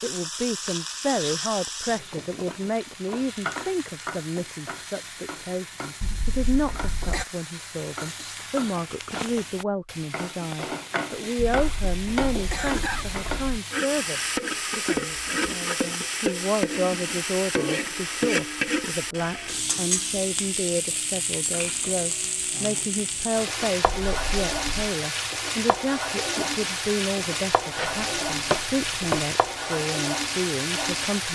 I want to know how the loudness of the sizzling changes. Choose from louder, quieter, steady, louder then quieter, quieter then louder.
louder.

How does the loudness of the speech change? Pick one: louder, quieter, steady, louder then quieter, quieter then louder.
steady.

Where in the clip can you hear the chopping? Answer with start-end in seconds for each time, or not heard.
27.8-29.2.